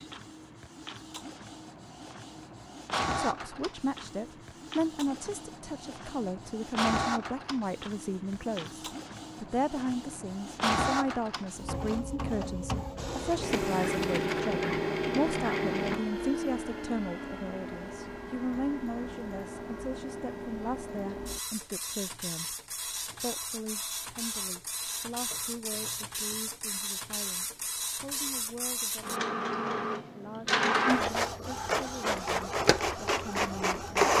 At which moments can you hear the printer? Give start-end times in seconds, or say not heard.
0.0-34.1.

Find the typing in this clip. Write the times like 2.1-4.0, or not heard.
not heard.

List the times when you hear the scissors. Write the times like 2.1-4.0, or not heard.
not heard.